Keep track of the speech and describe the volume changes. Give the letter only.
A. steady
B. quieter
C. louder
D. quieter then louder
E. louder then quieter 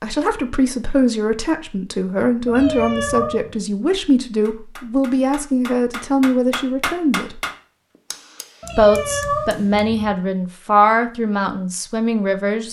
A.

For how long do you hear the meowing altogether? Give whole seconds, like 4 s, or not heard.
3 s.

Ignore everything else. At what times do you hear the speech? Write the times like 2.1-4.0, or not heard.
0.0-7.4, 8.8-12.6.